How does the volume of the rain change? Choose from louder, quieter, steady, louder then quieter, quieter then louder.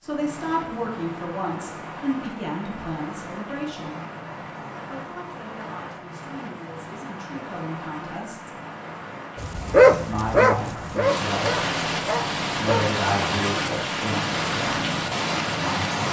louder.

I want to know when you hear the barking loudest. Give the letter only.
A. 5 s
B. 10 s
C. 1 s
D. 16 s
B.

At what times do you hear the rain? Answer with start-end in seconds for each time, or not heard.
0.0-16.0.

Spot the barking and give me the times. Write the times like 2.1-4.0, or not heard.
9.4-12.9.